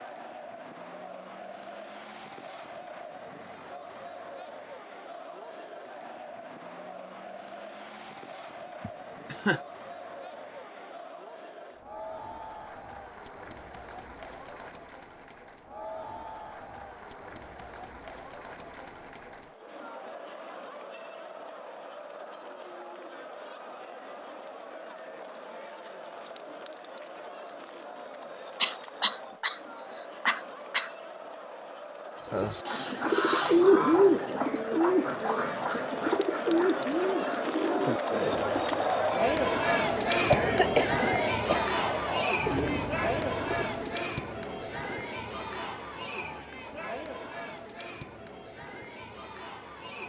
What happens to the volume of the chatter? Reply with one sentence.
The volume of the chatter goes up.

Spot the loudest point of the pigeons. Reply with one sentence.
The volume of the pigeons peaks at 34 seconds.